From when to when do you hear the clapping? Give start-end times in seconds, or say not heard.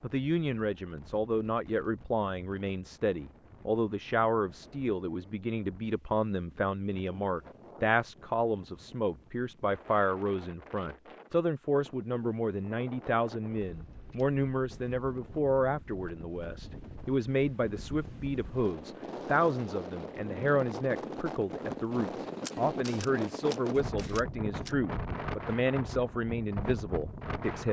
not heard.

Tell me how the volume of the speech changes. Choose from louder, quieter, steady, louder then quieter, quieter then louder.
steady.